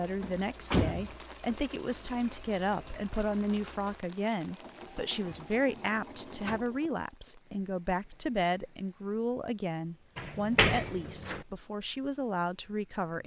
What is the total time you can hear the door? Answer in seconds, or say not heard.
4 s.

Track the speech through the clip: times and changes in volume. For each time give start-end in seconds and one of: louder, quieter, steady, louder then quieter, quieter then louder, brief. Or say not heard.
0.0-13.2 steady.